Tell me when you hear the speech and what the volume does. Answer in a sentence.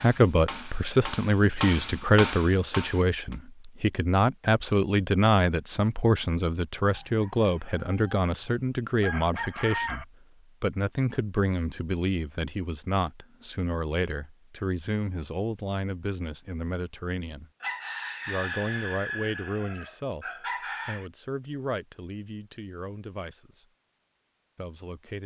You can hear the speech from 0.0 to 17.5 s, getting quieter; from 18.2 to 23.6 s, getting quieter; and briefly from 24.6 to 25.2 s.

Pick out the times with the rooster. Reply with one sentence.
The rooster can be heard from 7.0 to 10.1 s and from 17.6 to 21.1 s.